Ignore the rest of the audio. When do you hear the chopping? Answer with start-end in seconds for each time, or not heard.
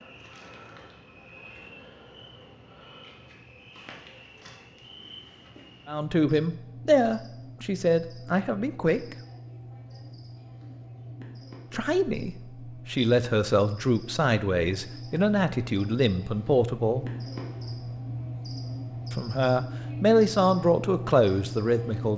not heard.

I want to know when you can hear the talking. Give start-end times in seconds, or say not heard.
5.8-9.2, 11.7-17.1, 19.1-22.1.